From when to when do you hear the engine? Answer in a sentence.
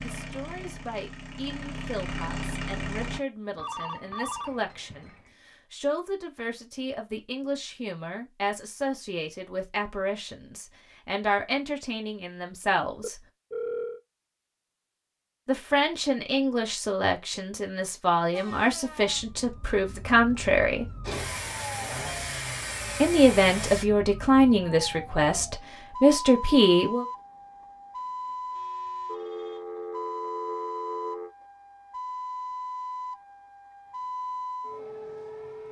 You can hear the engine from 0.0 to 3.2 s and from 21.0 to 23.9 s.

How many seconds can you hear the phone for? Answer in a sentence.
You can hear the phone for 5 seconds altogether.